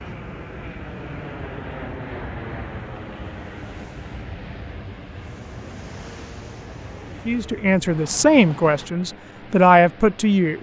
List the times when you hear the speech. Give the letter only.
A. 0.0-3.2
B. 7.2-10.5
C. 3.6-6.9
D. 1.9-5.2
B.